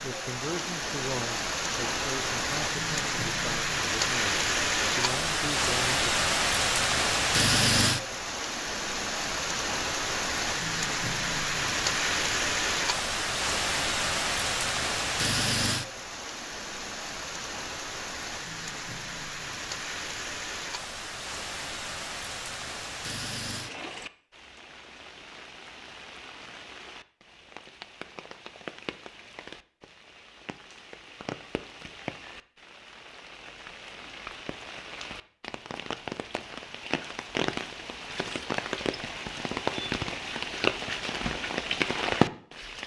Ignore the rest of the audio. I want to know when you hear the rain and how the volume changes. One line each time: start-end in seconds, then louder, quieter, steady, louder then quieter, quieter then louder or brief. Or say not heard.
0.0-42.8 quieter then louder.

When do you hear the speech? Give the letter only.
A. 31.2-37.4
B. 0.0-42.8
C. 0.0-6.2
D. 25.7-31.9
C.